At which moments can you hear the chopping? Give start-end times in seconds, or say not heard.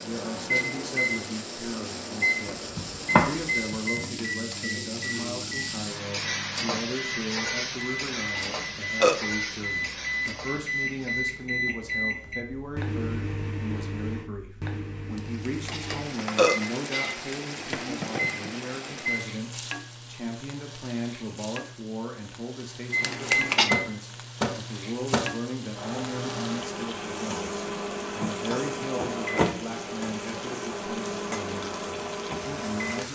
2.5-4.0.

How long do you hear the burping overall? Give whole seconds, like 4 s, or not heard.
3 s.